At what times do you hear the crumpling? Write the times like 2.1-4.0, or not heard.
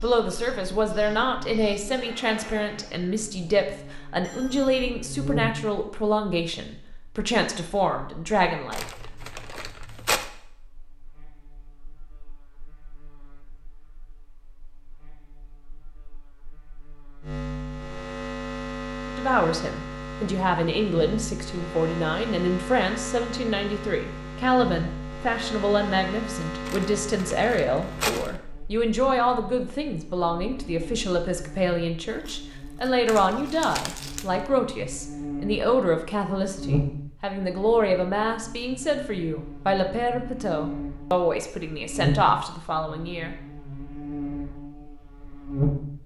8.7-10.3, 26.6-28.4, 32.1-34.3.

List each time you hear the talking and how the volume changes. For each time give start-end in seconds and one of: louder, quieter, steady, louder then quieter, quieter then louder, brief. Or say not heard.
0.0-8.8 steady
19.1-43.3 steady.